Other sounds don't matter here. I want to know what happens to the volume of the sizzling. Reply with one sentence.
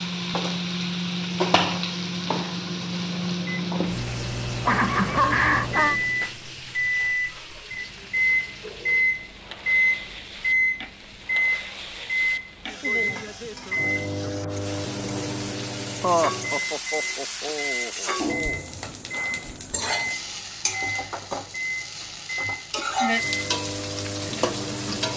The loudness of the sizzling goes down, then up.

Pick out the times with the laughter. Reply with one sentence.
You can hear the laughter from 4.6 to 6.0 s and from 16.0 to 18.6 s.